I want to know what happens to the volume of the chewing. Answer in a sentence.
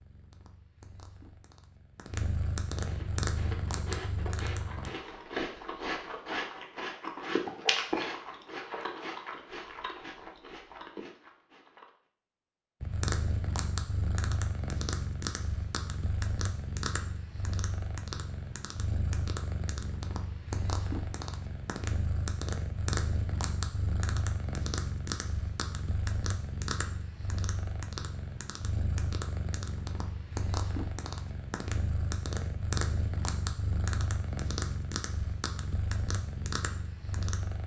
The loudness of the chewing goes up, then down.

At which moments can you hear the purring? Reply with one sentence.
You can hear the purring from 0.0 to 4.9 s and from 12.8 to 37.6 s.